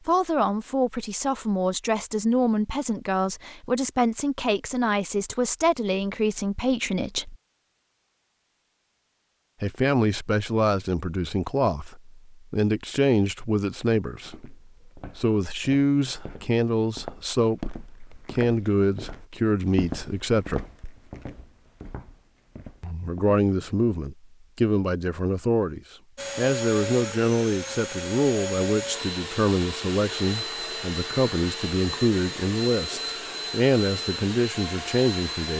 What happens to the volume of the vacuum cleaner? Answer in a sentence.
The volume of the vacuum cleaner stays about the same.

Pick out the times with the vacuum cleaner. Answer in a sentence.
You can hear the vacuum cleaner from 26.1 to 35.5 s.